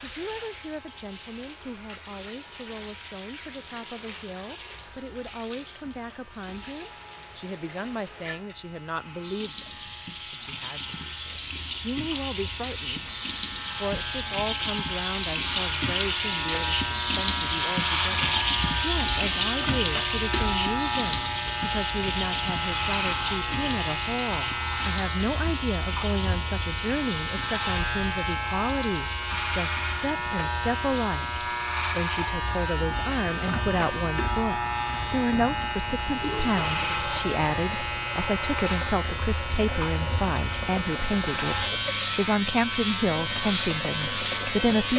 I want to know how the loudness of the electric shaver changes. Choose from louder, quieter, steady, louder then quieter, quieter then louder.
louder.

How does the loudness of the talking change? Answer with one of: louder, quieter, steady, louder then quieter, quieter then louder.
louder.